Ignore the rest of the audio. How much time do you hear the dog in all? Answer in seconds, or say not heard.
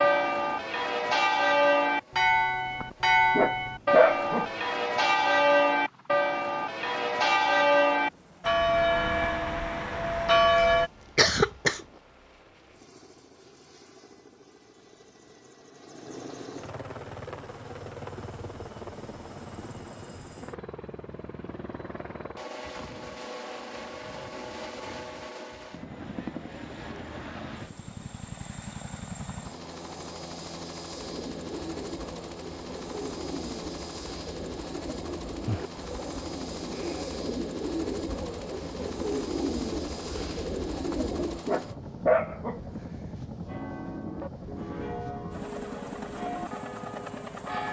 3 s.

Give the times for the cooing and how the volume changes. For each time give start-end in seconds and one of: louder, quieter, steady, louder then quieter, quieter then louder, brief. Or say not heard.
30.9-41.4 louder.